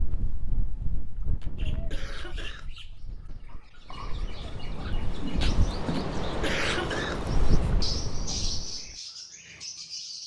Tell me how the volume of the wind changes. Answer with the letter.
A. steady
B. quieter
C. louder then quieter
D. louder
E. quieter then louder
E.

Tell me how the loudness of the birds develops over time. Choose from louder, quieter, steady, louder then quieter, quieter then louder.
louder.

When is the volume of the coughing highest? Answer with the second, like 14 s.
7 s.